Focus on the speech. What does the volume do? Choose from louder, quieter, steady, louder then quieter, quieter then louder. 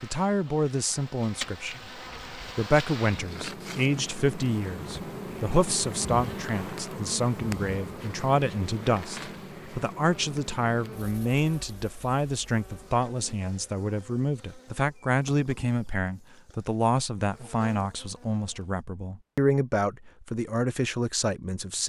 steady.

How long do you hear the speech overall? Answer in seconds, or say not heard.
22 s.